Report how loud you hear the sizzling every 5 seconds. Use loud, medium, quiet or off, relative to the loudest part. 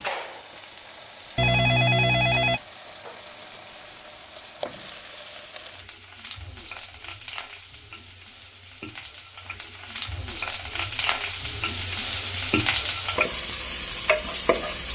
quiet, quiet, loud.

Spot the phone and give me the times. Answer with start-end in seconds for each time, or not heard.
1.4-2.6.